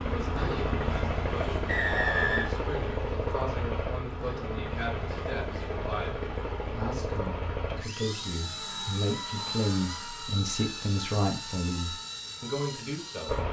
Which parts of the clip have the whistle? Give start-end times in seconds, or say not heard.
1.6-2.5.